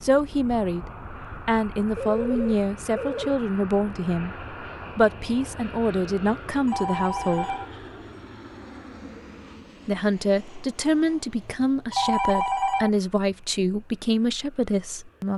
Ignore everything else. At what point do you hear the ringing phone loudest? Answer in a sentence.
The volume of the ringing phone peaks at 12 seconds.